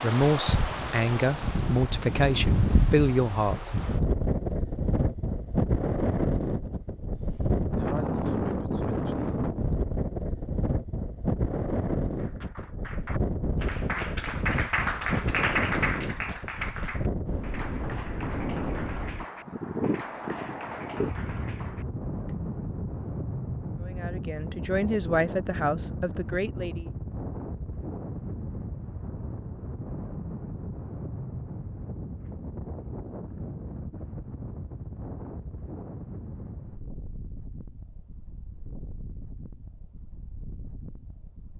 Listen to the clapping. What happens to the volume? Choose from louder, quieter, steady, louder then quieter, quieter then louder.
louder then quieter.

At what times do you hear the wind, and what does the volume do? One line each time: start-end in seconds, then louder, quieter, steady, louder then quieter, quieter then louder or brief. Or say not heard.
0.0-41.5 quieter.